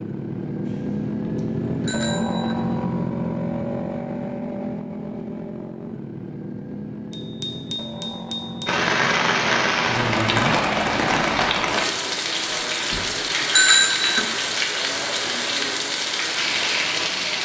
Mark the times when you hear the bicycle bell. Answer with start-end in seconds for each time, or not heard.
0.7-2.6, 7.1-8.8, 12.3-14.2.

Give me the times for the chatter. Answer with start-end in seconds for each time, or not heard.
not heard.